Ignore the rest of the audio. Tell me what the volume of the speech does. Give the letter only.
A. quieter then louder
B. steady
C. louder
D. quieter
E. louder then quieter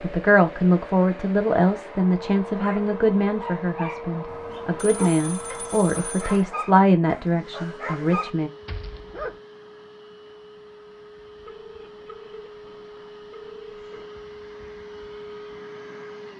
A.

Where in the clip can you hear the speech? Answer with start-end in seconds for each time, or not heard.
0.0-8.5.